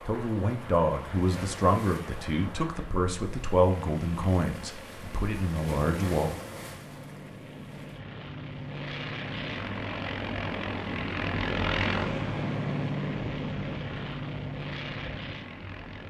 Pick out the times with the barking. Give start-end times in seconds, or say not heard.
not heard.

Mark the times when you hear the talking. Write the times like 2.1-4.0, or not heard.
0.0-6.3.